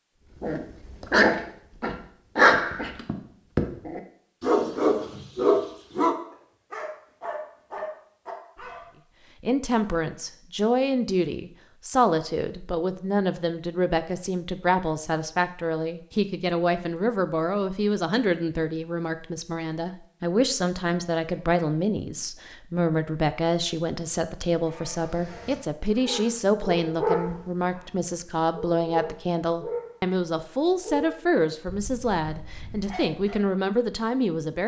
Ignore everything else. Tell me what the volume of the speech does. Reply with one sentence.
The volume of the speech stays about the same.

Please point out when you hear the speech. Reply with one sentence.
You can hear the speech from 9.4 to 34.6 s.